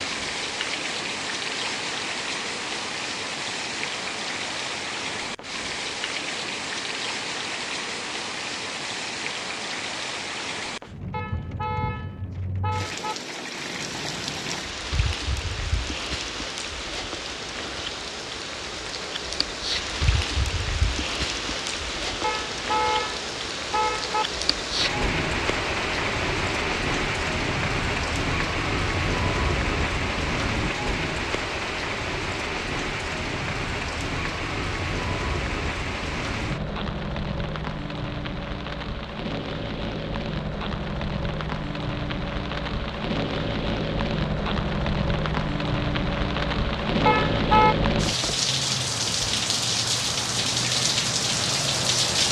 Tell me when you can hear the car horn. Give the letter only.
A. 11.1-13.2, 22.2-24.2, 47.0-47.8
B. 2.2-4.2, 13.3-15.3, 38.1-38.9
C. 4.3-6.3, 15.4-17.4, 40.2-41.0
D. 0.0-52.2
A.